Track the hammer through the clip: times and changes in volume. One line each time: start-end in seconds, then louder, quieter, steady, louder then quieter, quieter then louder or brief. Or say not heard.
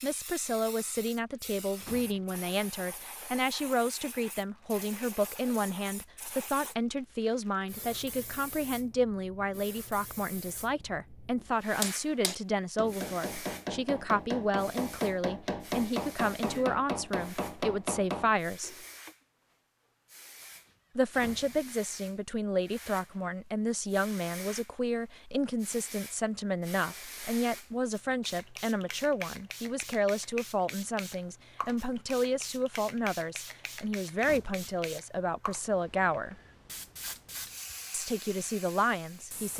11.8-19.1 steady.